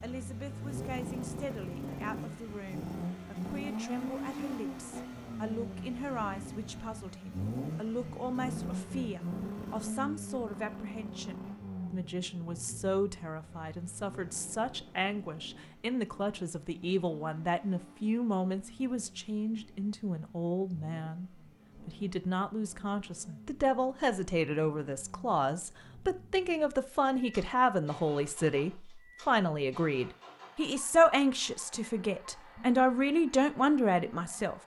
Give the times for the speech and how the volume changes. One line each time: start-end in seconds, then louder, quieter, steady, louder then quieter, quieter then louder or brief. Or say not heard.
0.0-34.5 louder.